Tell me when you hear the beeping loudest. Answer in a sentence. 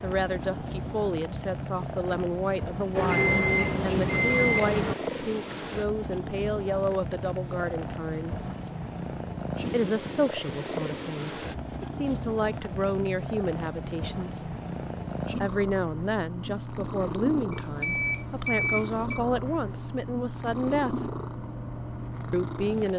The loudest moment of the beeping is at 19 seconds.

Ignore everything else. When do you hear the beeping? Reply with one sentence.
You can hear the beeping from 3.0 to 5.0 s and from 17.5 to 19.2 s.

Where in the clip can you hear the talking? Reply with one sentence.
You can hear the talking from 0.0 to 8.5 s, from 9.7 to 14.6 s, from 15.4 to 21.1 s and from 22.3 to 22.9 s.